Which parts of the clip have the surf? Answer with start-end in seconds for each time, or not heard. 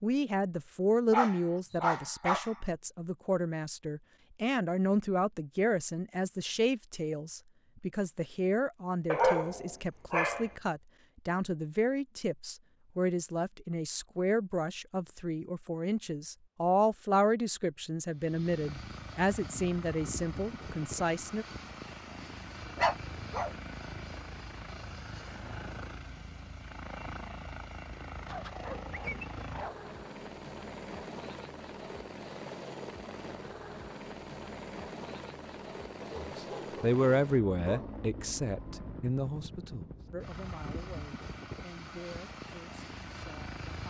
not heard.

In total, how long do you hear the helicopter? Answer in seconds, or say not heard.
26 s.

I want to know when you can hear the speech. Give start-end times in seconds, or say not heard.
0.0-21.4, 36.1-43.8.